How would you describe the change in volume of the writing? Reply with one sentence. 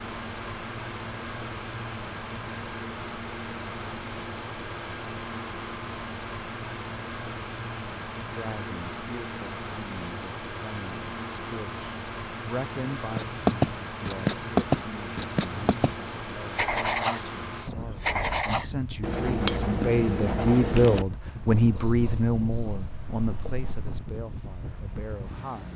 The volume of the writing goes down.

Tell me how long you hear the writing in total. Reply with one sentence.
You can hear the writing for 10 seconds altogether.